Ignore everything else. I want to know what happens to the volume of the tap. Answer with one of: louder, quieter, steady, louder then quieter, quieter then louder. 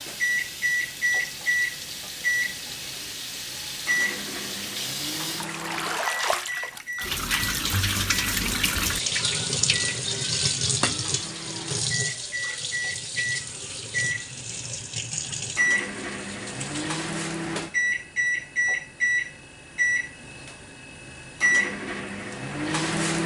louder then quieter.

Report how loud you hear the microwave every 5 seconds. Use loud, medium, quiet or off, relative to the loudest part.
loud, medium, medium, loud, loud.